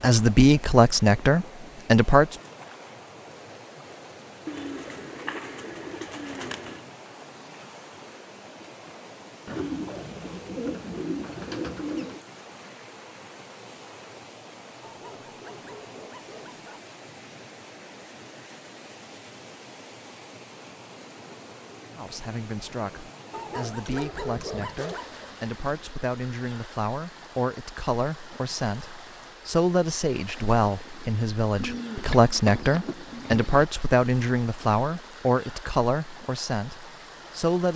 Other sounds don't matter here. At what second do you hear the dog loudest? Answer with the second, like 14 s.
24 s.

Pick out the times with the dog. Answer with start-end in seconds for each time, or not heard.
14.8-16.8, 23.3-25.1.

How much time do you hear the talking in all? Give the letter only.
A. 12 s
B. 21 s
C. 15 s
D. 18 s
D.